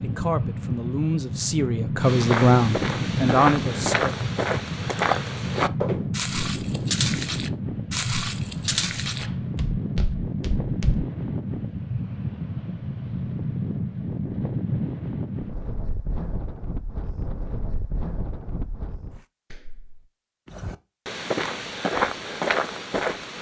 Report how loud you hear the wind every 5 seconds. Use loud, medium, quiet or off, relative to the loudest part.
loud, loud, loud, medium, off.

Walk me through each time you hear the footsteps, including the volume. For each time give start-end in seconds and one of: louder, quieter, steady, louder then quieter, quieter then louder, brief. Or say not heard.
2.0-11.1 quieter
20.4-23.3 brief.